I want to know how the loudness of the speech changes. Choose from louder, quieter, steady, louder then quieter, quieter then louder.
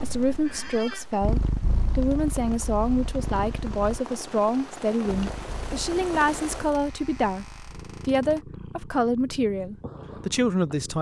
steady.